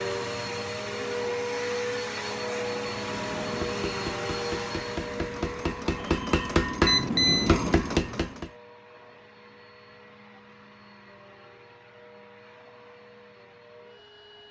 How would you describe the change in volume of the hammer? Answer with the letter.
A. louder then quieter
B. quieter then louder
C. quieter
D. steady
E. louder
E.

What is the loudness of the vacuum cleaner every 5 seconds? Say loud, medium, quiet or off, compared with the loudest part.
loud, medium, quiet.